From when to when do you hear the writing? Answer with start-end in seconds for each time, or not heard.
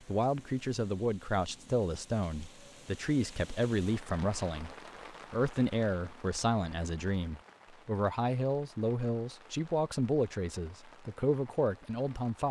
not heard.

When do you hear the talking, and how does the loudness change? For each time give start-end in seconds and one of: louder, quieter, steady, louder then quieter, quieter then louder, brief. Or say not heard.
0.1-12.4 steady.